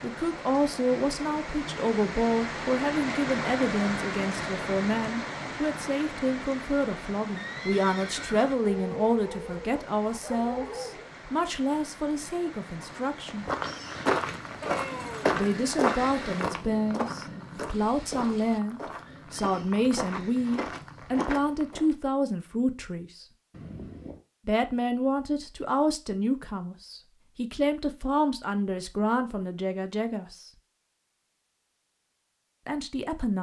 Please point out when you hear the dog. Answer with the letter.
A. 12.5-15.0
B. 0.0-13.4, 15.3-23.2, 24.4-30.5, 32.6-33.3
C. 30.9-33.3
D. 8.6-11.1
D.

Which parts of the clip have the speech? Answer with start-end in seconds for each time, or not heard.
0.0-13.4, 15.3-23.2, 24.4-30.5, 32.6-33.3.